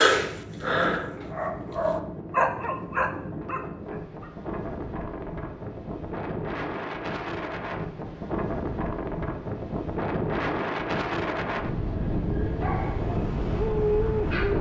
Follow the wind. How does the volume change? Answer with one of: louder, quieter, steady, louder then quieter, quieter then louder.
louder.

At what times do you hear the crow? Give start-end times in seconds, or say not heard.
not heard.